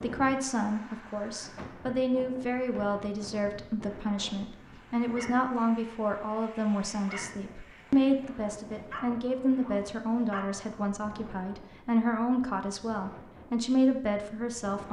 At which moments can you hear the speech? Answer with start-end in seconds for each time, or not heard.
0.0-14.8.